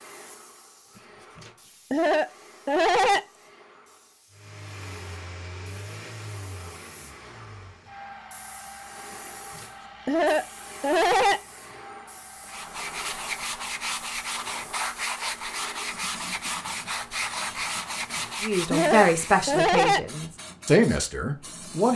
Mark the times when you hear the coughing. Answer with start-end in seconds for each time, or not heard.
1.4-3.2, 9.6-11.4, 18.1-20.1.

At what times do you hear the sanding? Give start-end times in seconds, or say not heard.
12.4-19.4.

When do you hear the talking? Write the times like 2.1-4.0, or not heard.
18.4-21.9.